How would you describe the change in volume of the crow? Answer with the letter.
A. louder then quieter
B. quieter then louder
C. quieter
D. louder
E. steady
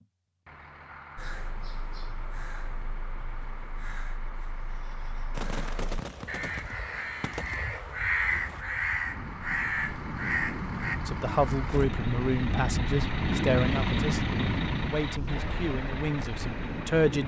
D.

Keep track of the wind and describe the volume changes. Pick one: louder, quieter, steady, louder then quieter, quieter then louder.
louder then quieter.